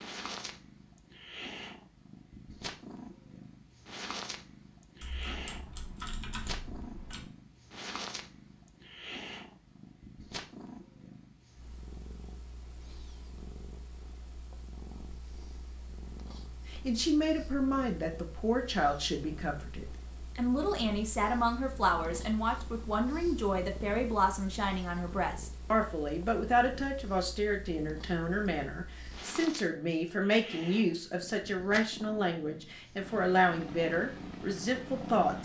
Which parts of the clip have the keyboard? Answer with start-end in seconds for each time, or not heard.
5.0-7.3.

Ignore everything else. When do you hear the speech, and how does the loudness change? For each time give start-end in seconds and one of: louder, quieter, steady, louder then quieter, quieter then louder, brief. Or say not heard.
16.7-35.4 steady.